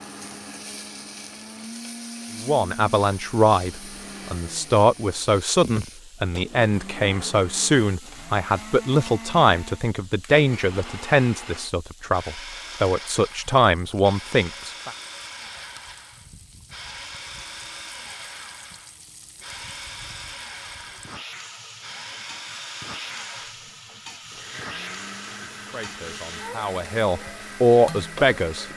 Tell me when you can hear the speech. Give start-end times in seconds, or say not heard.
2.4-14.9, 25.6-28.6.